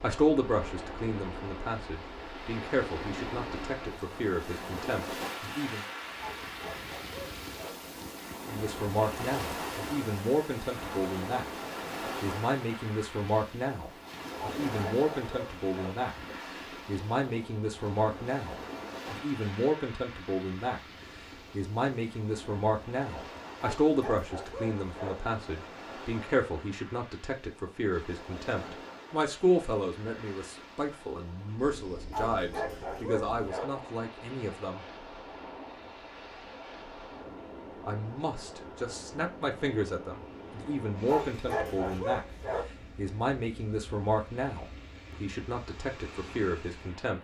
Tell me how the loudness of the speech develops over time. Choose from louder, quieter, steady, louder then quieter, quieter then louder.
steady.